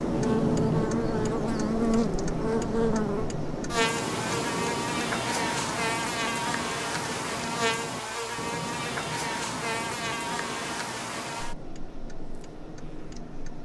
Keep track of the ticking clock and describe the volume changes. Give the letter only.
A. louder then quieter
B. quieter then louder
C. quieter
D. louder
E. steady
C.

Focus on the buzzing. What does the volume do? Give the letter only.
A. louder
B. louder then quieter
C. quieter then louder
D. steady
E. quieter
E.